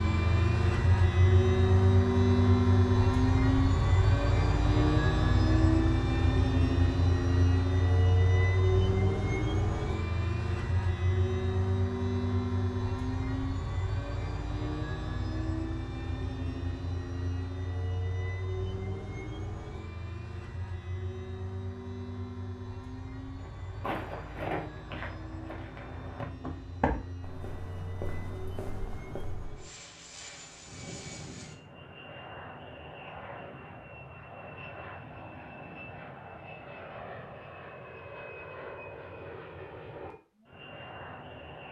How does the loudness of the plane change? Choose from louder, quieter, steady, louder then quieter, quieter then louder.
quieter.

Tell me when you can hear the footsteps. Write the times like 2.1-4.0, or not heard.
23.4-29.6.